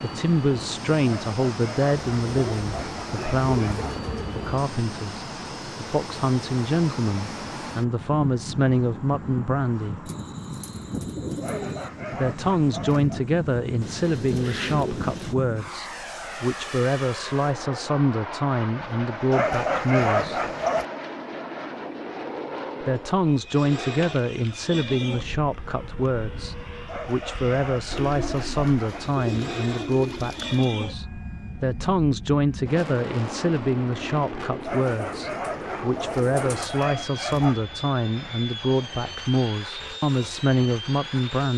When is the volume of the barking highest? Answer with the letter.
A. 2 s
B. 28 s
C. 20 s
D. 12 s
C.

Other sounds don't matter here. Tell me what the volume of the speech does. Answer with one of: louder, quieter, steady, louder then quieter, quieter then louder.
steady.